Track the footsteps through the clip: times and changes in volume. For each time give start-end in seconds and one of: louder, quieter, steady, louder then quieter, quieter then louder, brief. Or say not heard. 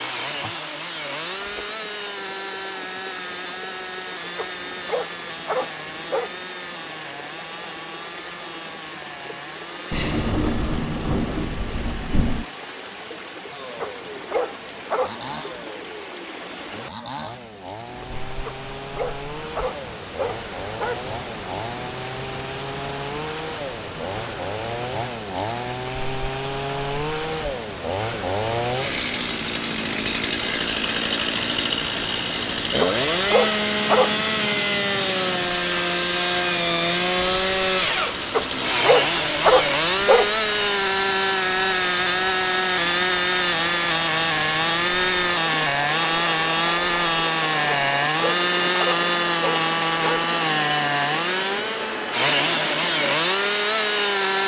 not heard.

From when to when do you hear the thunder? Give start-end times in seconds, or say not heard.
9.9-12.4.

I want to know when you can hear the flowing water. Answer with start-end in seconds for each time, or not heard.
0.0-54.4.